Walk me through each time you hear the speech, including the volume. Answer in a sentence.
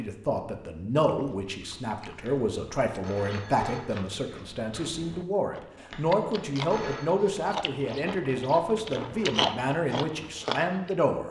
The speech can be heard from 0.0 to 11.2 s, at a steady volume.